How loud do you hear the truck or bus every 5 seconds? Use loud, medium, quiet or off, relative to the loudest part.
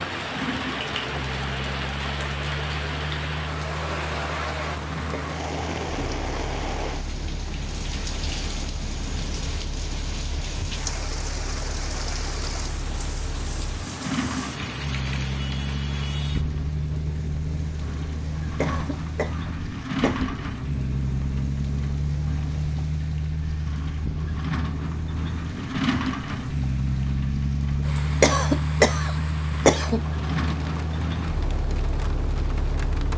medium, quiet, medium, loud, loud, loud, loud.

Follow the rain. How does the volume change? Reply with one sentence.
The loudness of the rain goes down.